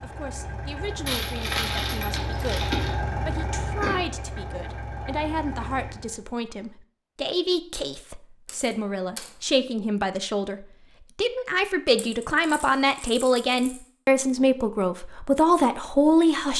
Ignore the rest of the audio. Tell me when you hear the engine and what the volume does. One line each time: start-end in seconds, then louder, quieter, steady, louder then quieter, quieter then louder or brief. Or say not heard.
0.0-6.2 louder then quieter.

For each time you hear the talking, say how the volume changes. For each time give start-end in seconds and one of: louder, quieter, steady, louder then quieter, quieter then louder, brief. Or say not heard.
0.0-16.5 louder.